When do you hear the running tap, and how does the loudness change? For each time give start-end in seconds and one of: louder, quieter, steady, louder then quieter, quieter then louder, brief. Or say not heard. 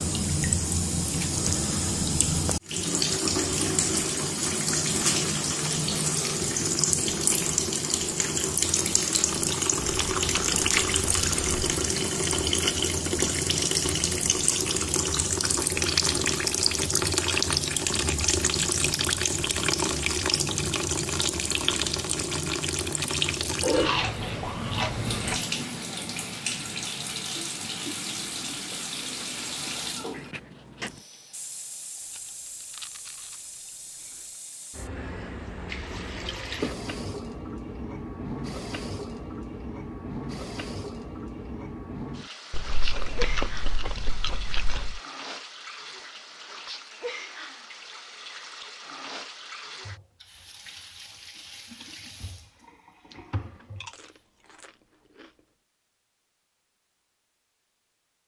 0.0-54.2 quieter.